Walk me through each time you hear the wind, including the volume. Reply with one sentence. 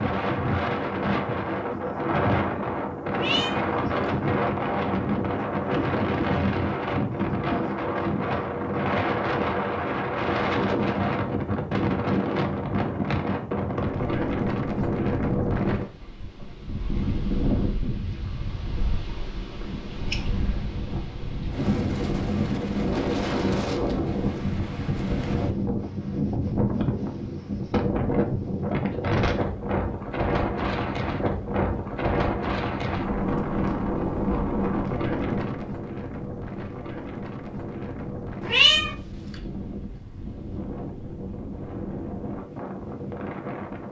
The wind can be heard from 0.0 to 43.8 s, getting quieter.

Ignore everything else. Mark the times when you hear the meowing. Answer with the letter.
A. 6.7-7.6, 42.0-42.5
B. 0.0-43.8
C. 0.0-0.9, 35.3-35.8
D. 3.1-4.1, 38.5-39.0
D.